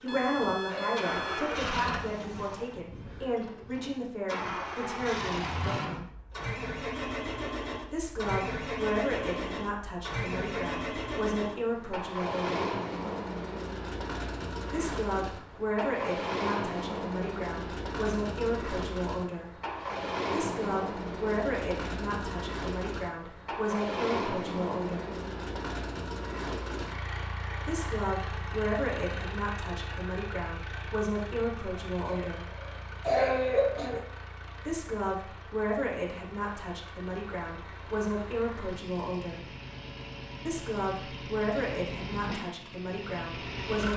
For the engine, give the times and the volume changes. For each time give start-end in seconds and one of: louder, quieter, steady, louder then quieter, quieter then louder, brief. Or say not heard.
0.0-43.9 quieter.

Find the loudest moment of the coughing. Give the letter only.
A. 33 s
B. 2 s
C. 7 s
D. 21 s
A.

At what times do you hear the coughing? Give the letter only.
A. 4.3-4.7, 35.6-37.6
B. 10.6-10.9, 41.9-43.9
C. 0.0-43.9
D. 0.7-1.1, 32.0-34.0
D.